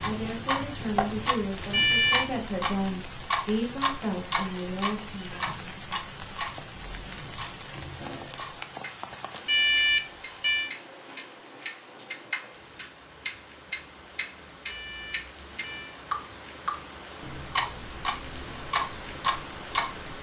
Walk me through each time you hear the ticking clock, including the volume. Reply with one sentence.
You can hear the ticking clock from 0.0 to 20.1 s, getting quieter then louder.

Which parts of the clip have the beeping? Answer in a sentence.
You can hear the beeping from 1.7 to 2.2 s, from 9.4 to 10.8 s and from 14.7 to 16.0 s.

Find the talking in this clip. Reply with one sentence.
The talking can be heard from 0.0 to 5.5 s.